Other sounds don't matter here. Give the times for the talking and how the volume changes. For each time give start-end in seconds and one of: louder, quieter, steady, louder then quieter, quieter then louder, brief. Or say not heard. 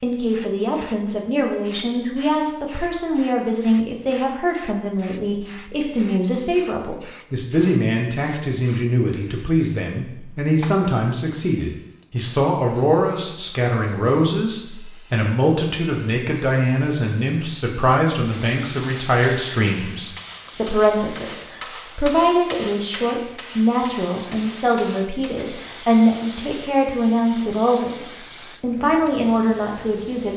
0.0-30.3 steady.